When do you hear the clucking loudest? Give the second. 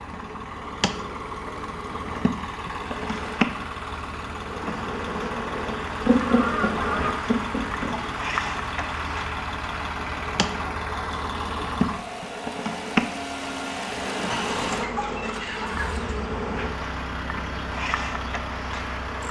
6 s.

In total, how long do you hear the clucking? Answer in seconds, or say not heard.
4 s.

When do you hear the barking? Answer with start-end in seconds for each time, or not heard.
not heard.